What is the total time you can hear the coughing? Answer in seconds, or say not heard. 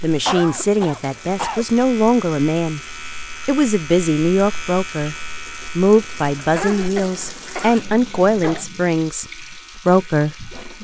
4 s.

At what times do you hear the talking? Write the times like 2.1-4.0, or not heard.
0.0-2.8, 3.5-5.2, 5.8-10.6.